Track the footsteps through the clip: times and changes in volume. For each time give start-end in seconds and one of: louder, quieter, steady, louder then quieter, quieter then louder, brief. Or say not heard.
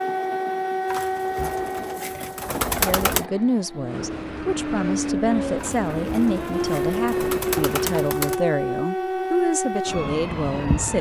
not heard.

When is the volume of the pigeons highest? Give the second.
3 s.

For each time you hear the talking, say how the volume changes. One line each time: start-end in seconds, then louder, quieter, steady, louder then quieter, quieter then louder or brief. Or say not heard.
2.8-10.9 steady.